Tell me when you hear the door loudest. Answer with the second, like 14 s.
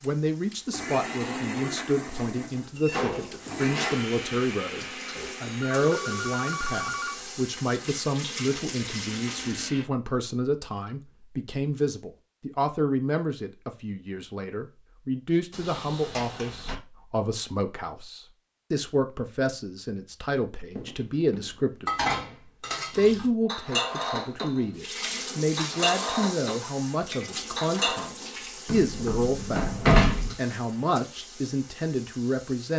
30 s.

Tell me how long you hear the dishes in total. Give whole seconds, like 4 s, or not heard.
7 s.